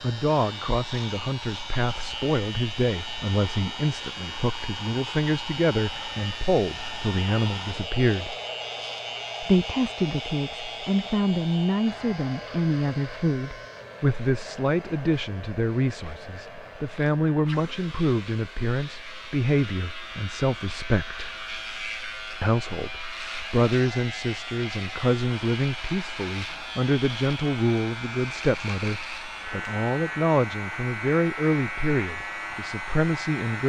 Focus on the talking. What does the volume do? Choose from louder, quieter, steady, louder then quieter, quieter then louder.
steady.